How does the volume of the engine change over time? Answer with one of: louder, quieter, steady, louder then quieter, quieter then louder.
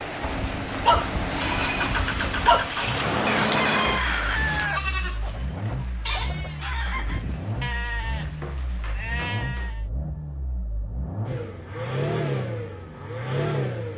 quieter then louder.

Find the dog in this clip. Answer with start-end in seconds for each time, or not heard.
0.2-2.9.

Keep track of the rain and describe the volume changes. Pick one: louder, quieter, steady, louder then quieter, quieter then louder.
quieter.